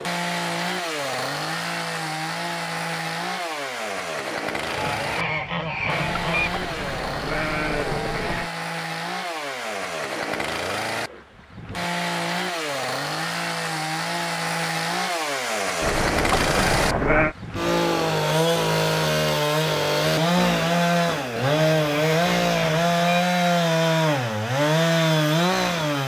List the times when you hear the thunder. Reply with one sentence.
The thunder can't be heard in this clip.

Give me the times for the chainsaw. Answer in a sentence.
The chainsaw can be heard from 0.0 to 26.0 s.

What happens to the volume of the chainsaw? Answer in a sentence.
The volume of the chainsaw goes up.